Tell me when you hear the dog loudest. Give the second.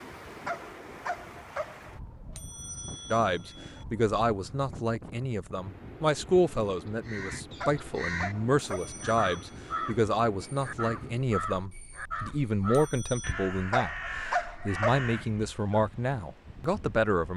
14 s.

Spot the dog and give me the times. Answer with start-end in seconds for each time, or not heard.
0.5-1.9, 7.6-9.1, 13.7-15.1.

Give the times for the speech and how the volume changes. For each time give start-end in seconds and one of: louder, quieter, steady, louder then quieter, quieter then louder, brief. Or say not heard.
3.1-17.3 steady.